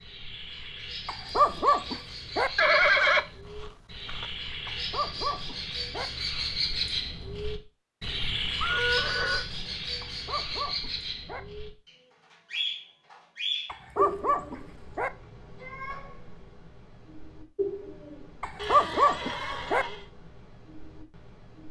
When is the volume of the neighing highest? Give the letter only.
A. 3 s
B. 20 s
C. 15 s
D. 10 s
A.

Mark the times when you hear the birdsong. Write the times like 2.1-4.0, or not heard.
0.0-21.6.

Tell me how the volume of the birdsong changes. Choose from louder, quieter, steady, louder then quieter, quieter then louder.
louder then quieter.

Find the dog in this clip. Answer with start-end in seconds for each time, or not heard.
1.1-2.5, 4.7-6.1, 10.0-11.4, 13.7-15.1, 18.4-19.9.